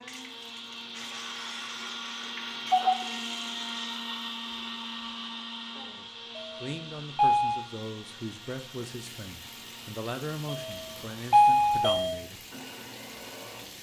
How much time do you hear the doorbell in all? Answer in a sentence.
The doorbell can be heard for 4 seconds in total.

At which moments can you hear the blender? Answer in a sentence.
The blender can be heard from 0.0 to 13.7 s.